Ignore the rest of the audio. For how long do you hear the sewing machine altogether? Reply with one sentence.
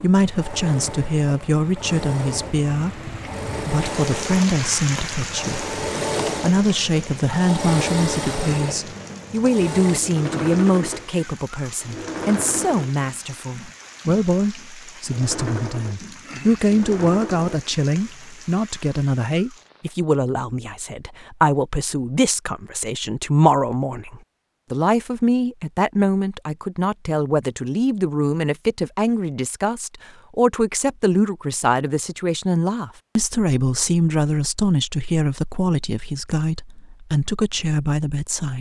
The sewing machine can be heard for 18 seconds in total.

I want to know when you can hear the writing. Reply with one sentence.
You can't hear the writing here.